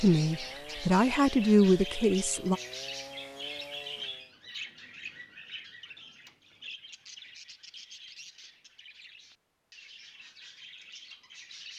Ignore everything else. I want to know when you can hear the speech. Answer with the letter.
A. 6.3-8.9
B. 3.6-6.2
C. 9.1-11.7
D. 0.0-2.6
D.